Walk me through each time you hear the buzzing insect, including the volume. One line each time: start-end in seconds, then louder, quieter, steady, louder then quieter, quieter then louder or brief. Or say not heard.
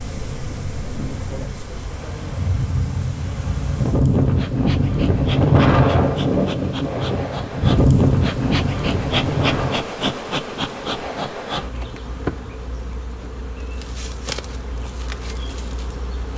0.0-16.3 louder then quieter.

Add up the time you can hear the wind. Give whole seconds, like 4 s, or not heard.
10 s.